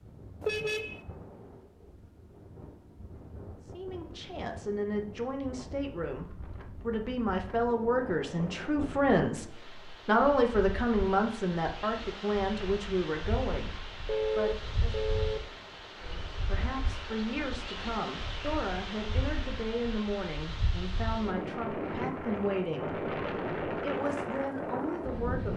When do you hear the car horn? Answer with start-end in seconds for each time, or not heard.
0.4-1.0, 14.1-15.4.